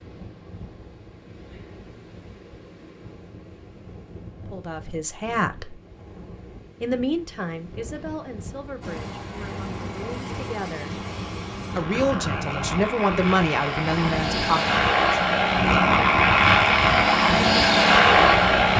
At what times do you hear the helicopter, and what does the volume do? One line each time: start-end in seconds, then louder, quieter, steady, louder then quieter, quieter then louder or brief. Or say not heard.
8.8-18.7 louder.